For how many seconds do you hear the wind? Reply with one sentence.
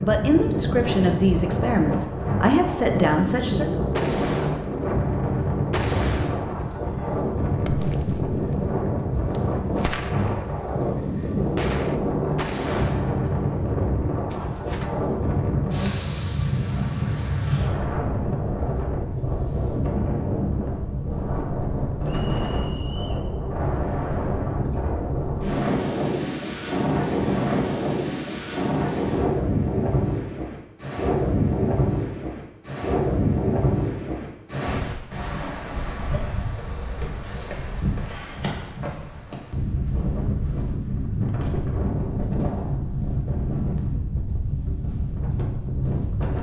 The wind can be heard for 46 seconds in total.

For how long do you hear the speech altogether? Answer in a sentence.
You can hear the speech for 4 seconds altogether.